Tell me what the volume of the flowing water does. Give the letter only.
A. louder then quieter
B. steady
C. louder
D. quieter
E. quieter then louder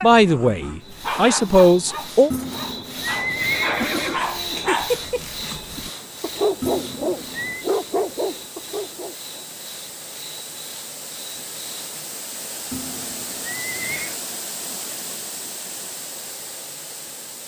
C.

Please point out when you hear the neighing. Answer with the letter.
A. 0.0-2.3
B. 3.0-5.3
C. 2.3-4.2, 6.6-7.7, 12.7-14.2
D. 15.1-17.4
C.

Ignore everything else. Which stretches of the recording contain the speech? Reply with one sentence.
The speech can be heard from 0.0 to 2.3 s.